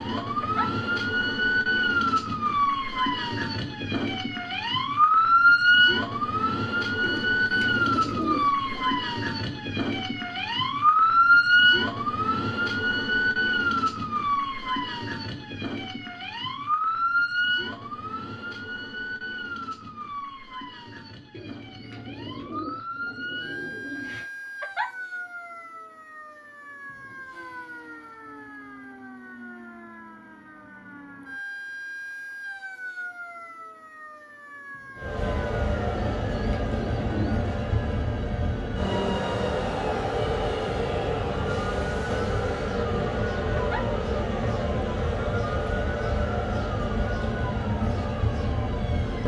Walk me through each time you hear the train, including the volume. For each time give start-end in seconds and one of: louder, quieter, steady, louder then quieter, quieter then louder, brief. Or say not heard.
35.0-49.2 steady.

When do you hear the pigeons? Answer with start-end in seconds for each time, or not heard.
7.0-8.9, 21.3-24.2, 36.0-37.5.